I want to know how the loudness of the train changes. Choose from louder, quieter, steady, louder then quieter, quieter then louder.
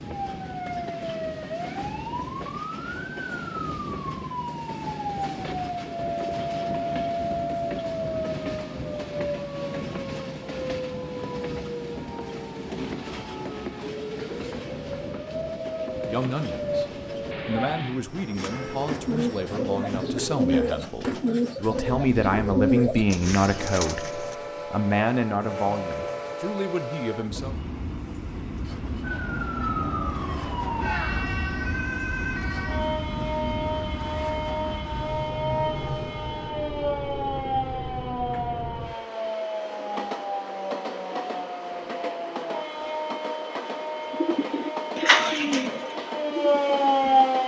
steady.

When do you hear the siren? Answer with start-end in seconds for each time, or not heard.
0.0-17.8, 29.0-47.4.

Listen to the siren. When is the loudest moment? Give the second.
47 s.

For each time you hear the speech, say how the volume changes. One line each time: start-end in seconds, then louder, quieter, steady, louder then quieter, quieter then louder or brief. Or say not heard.
16.1-16.9 brief
17.4-27.6 louder then quieter.